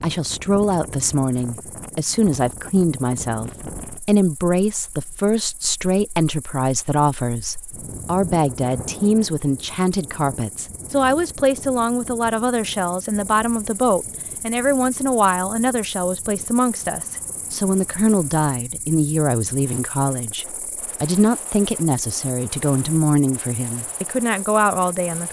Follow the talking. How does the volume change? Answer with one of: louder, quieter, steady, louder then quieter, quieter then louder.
steady.